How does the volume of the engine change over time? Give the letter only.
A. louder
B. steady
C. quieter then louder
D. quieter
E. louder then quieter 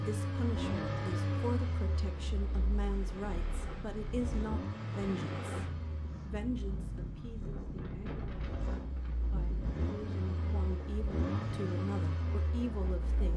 C.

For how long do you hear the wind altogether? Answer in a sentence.
You can hear the wind for 13 seconds altogether.